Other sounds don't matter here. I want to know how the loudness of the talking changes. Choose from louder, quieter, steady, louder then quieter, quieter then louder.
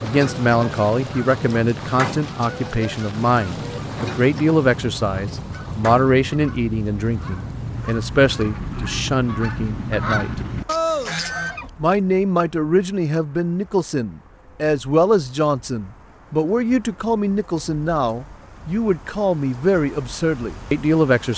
steady.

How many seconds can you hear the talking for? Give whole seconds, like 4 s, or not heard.
20 s.